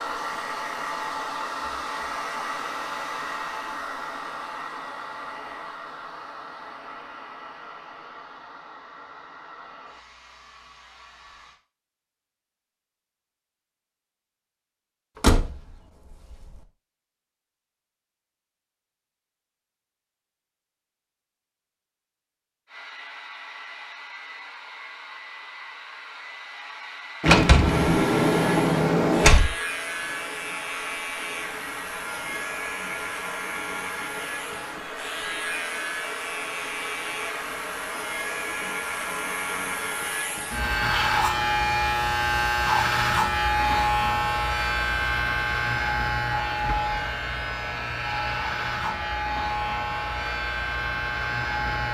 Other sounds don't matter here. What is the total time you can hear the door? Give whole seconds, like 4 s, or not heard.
4 s.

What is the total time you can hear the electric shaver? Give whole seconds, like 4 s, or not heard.
24 s.